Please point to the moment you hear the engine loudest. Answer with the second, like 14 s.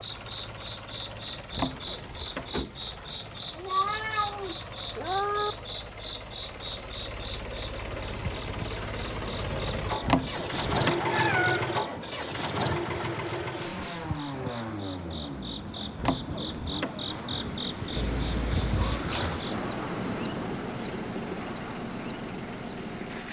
11 s.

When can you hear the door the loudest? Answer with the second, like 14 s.
10 s.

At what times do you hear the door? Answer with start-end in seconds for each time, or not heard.
1.5-2.5, 10.0-11.1, 15.9-17.0.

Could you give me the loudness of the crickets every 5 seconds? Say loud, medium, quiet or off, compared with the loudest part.
medium, medium, medium, loud, loud.